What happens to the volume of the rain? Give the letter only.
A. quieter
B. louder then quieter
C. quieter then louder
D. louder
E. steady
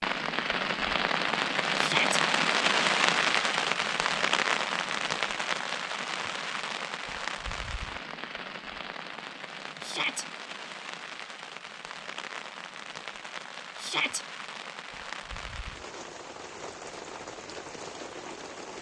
A.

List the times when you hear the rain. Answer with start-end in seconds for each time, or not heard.
0.0-18.7.